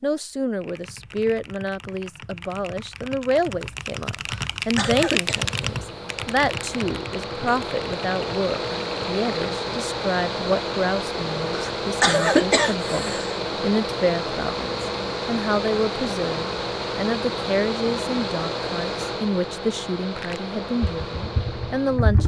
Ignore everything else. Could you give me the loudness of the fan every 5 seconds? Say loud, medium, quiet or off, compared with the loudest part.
off, loud, loud, loud, medium.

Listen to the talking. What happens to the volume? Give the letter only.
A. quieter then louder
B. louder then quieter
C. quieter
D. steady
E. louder
D.